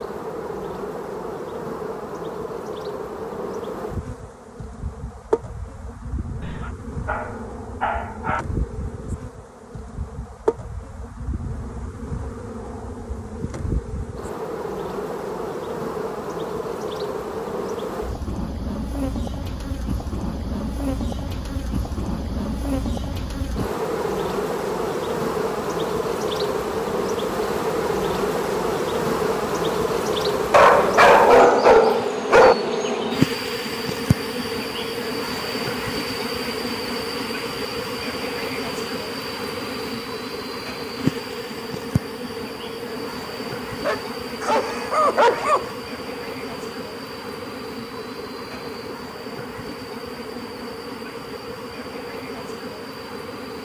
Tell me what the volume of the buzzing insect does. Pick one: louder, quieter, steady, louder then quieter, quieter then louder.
louder then quieter.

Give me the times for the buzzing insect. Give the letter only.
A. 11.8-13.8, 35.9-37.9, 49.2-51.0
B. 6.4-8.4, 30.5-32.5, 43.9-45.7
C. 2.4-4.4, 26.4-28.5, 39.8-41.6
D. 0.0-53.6
D.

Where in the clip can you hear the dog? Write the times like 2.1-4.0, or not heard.
6.4-8.4, 30.5-32.5, 43.9-45.7.